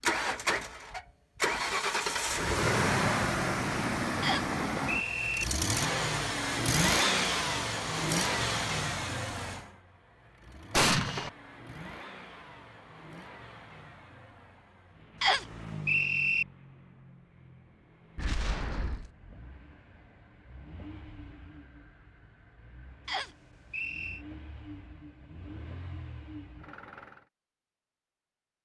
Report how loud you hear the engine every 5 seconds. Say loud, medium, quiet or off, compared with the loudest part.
loud, loud, quiet, quiet, quiet, quiet.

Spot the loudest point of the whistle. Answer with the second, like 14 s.
16 s.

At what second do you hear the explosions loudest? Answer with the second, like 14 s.
11 s.